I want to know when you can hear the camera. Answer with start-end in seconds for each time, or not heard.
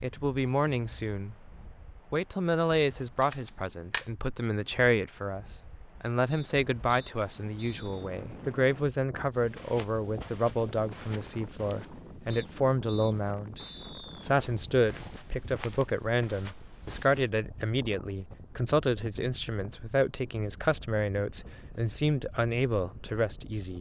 2.8-4.0.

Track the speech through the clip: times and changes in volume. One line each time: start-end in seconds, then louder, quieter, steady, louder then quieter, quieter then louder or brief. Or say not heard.
0.0-1.5 brief
2.1-23.7 steady.